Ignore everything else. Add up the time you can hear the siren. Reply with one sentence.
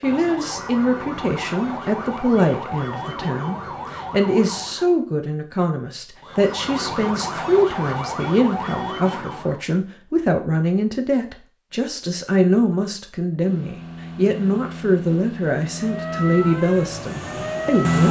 You can hear the siren for 11 seconds altogether.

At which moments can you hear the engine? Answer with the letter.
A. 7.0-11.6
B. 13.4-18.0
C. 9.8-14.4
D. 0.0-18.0
B.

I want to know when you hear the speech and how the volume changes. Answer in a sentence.
The speech can be heard from 0.0 to 18.0 s, at a steady volume.